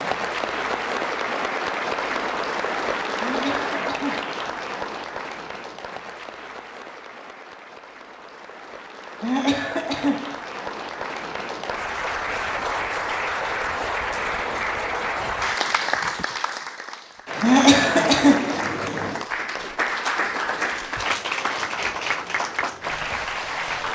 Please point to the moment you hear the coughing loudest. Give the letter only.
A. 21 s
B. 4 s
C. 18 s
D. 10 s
C.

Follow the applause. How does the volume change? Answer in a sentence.
The volume of the applause goes down, then up.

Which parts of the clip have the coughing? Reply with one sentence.
The coughing can be heard from 3.2 to 4.3 s, from 9.2 to 10.4 s and from 17.4 to 18.6 s.